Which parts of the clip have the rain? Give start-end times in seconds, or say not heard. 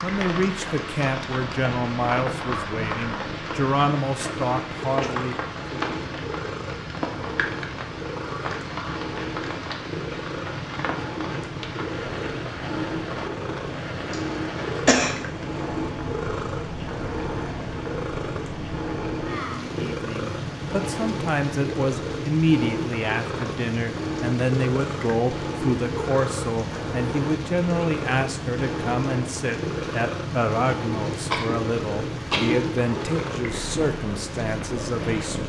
0.0-35.4.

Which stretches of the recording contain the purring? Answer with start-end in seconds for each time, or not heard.
0.0-35.4.